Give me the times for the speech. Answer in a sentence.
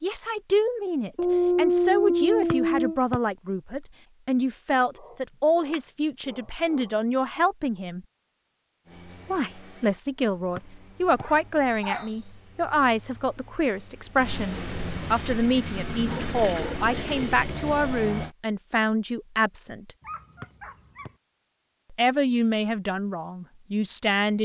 You can hear the speech from 0.0 to 8.1 s, from 9.2 to 19.9 s and from 21.9 to 24.4 s.